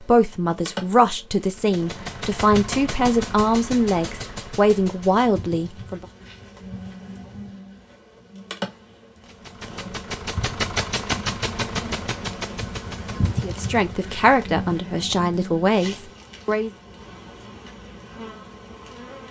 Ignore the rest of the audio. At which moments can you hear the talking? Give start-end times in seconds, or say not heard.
0.0-6.0, 13.4-16.7.